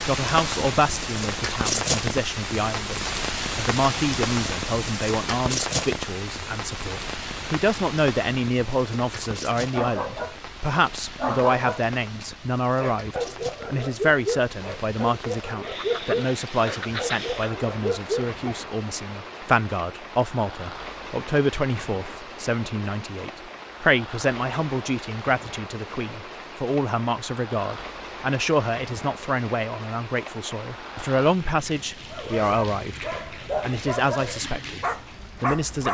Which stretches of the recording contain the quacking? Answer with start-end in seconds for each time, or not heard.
15.6-17.5.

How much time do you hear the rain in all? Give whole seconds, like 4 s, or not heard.
36 s.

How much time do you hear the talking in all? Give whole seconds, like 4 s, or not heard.
36 s.